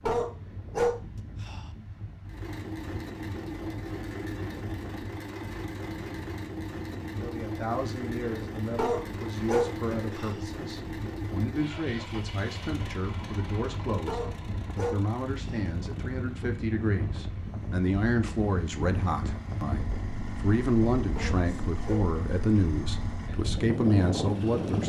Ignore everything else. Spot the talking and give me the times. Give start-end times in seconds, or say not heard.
7.1-24.8.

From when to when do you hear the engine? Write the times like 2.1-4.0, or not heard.
2.2-24.8.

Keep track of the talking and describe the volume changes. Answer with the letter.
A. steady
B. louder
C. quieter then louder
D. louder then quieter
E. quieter
B.